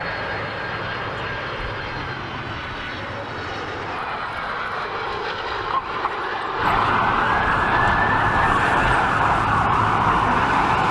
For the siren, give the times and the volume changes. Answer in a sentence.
You can hear the siren from 0.0 to 10.8 s, getting louder.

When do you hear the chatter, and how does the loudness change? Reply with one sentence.
The chatter can't be heard in this clip.